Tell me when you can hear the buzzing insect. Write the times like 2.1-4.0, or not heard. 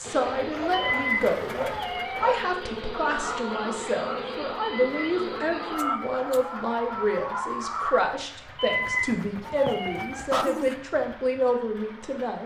0.0-5.8.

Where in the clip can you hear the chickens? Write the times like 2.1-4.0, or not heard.
3.0-8.0.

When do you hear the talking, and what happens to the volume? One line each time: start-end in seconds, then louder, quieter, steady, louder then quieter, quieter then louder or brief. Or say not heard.
0.0-12.4 steady.